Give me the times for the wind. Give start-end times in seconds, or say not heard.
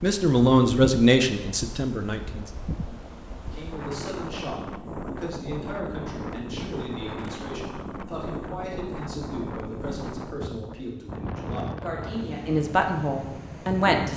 0.0-14.1.